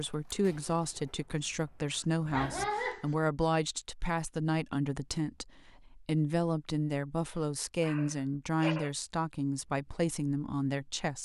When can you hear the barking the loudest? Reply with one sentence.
The loudest moment of the barking is at 3 seconds.